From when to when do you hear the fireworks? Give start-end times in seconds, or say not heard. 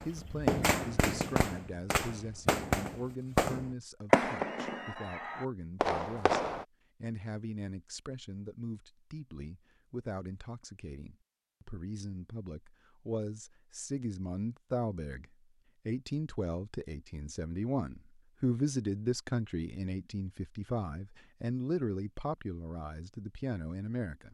0.0-6.7.